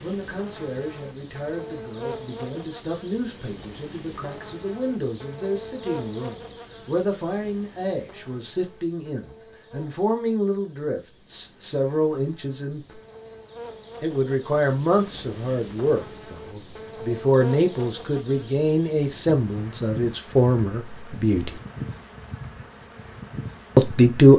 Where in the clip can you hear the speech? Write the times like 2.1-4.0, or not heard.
0.0-13.0, 14.0-21.6, 23.8-24.3.